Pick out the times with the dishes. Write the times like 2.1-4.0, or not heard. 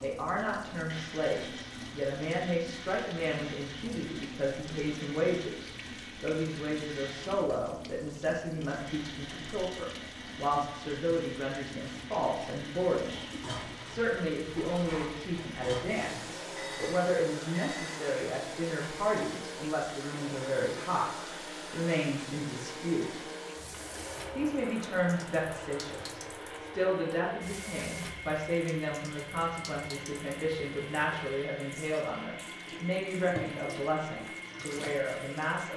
13.1-18.1.